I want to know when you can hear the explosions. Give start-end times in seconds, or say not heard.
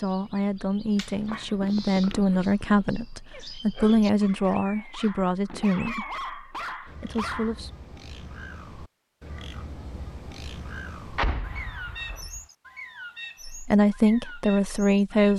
11.2-12.4.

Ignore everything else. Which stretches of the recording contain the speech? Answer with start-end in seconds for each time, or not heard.
0.0-7.7, 13.4-15.3.